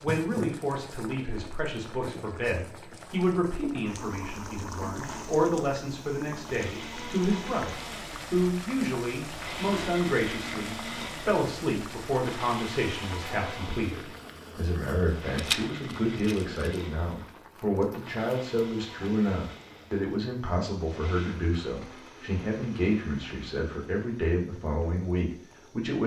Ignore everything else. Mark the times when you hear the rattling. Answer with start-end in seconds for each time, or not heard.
15.3-16.8.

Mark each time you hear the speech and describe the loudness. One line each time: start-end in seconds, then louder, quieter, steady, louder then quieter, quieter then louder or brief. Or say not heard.
0.0-26.0 steady.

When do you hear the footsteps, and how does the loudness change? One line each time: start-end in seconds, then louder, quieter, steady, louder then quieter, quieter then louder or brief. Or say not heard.
not heard.